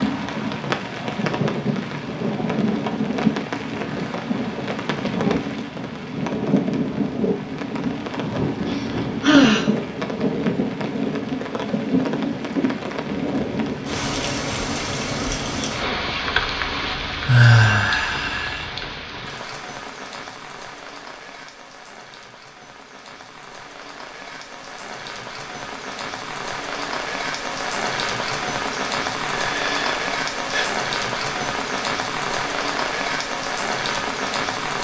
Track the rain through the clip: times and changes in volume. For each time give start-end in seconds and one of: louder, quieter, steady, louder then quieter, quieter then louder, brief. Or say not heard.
0.0-34.7 quieter then louder.